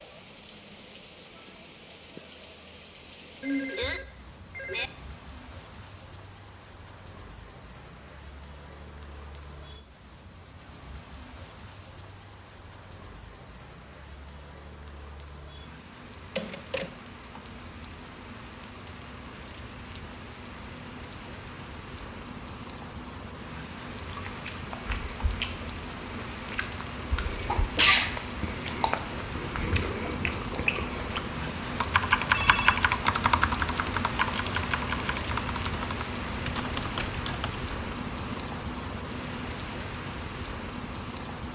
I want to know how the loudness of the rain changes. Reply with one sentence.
The loudness of the rain goes up.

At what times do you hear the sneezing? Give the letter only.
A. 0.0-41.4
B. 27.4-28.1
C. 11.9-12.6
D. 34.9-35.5
B.